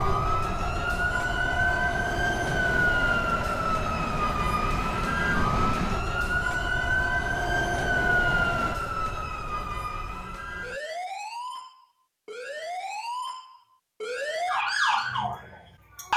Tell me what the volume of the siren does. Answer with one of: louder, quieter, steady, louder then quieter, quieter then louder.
quieter then louder.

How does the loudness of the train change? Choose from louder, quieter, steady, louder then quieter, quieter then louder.
steady.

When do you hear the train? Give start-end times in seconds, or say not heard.
0.0-8.8.